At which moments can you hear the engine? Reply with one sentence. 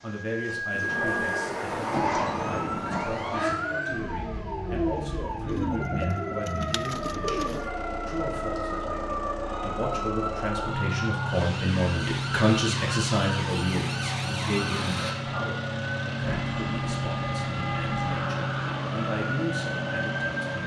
You can hear the engine from 0.0 to 20.6 s.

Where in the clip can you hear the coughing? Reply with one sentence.
You can't hear the coughing here.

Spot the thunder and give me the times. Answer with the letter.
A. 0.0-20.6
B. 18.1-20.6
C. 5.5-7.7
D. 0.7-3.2
D.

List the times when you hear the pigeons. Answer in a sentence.
The pigeons can be heard from 5.5 to 7.7 s.